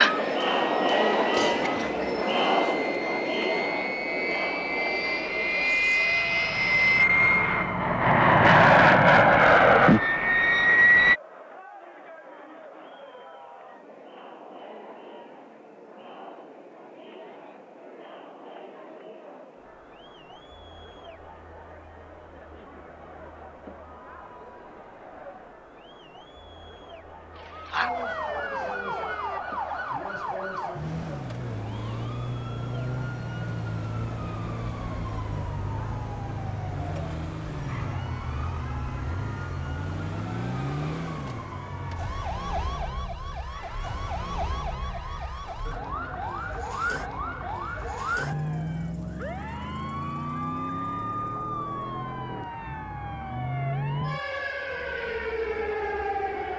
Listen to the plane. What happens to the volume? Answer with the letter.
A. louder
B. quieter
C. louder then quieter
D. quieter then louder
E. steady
A.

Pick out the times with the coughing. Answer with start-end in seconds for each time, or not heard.
1.4-2.2.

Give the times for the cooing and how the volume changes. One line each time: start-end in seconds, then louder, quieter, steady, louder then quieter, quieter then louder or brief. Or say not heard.
not heard.